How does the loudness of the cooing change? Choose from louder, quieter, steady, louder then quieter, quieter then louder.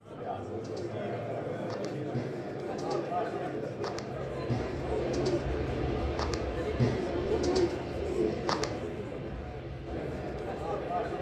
louder.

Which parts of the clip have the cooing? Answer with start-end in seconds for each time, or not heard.
0.5-8.8.